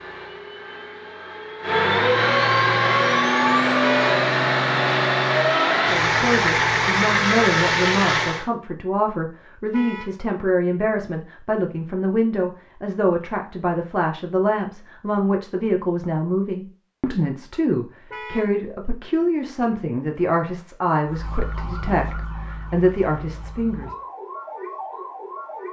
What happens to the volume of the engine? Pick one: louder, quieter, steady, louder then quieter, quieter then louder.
louder.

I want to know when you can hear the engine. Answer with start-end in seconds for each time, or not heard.
0.0-8.4.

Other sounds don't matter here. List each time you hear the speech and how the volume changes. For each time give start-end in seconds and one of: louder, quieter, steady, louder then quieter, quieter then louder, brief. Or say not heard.
5.9-23.9 steady.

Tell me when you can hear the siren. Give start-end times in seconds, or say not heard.
21.1-25.6.